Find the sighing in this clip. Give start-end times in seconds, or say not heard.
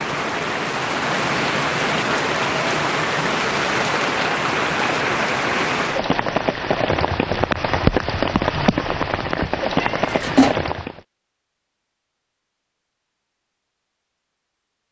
not heard.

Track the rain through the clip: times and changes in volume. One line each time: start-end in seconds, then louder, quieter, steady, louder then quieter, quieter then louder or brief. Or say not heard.
0.0-11.0 steady.